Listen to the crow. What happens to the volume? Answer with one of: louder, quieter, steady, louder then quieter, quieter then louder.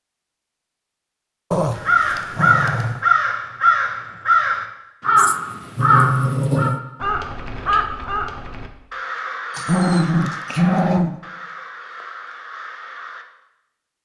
quieter.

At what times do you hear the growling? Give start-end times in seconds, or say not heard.
1.5-3.0, 5.2-6.8, 9.6-11.2.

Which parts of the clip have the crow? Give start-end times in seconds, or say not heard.
1.8-13.2.